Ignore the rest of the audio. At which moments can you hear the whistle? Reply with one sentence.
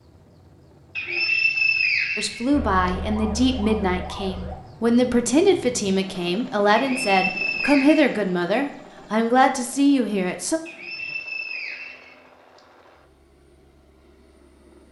The whistle can be heard from 0.9 to 2.9 s, from 6.8 to 8.1 s and from 10.7 to 12.6 s.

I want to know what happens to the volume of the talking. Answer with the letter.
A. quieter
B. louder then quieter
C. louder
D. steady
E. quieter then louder
D.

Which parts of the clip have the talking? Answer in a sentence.
The talking can be heard from 2.1 to 10.6 s.